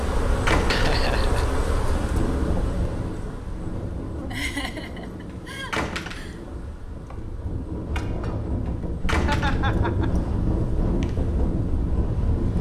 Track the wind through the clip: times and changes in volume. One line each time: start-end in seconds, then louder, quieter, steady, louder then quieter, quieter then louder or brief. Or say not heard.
0.2-12.5 quieter then louder.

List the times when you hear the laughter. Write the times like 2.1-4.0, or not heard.
0.7-1.4, 4.3-6.4, 9.2-10.1.